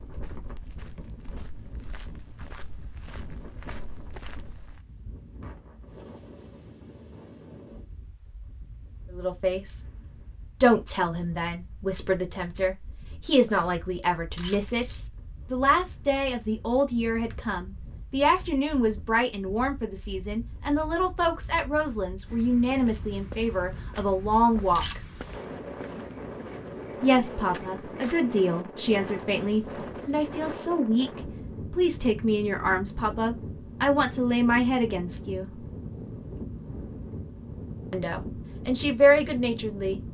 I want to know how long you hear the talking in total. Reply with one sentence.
The talking can be heard for 25 seconds in total.